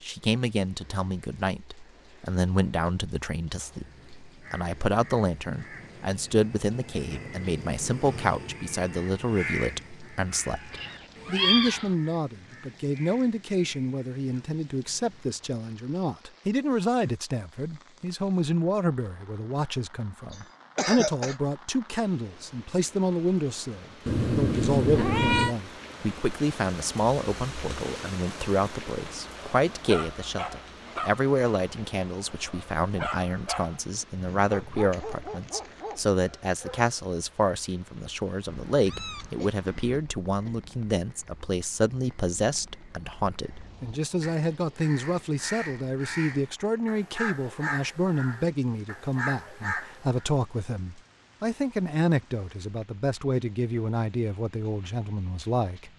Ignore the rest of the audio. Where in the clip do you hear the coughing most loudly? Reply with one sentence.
The volume of the coughing peaks at 21 seconds.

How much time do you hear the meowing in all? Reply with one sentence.
You can hear the meowing for 4 seconds altogether.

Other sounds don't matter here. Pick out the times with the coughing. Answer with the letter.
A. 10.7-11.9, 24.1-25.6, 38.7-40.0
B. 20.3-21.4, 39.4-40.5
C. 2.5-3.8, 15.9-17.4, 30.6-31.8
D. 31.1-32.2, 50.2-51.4
B.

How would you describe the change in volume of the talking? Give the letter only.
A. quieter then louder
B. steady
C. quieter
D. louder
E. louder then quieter
B.